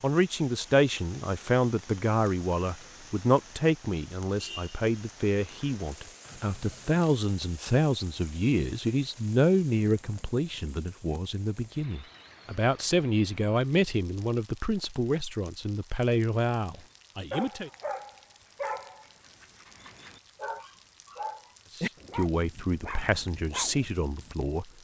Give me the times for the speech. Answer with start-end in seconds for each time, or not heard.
0.0-17.7, 21.8-24.6.